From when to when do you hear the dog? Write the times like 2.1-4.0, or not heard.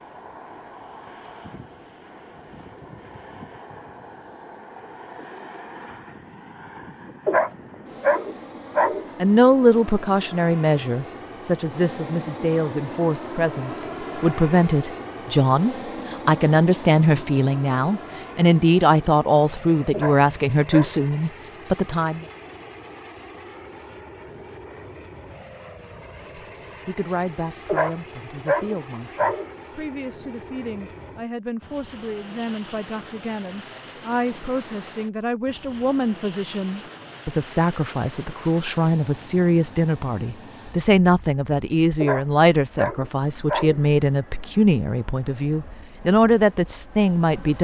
7.2-9.1, 19.9-21.1, 27.6-29.5, 42.0-43.8.